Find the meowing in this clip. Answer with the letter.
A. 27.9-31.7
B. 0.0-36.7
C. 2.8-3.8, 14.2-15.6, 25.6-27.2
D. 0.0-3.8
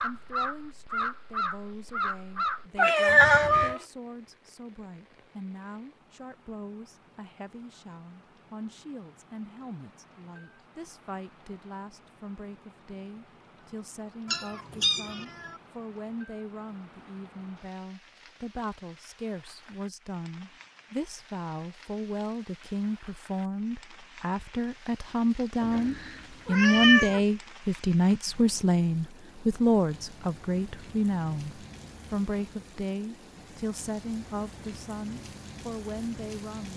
C.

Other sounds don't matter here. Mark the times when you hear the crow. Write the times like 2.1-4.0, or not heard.
0.0-3.8.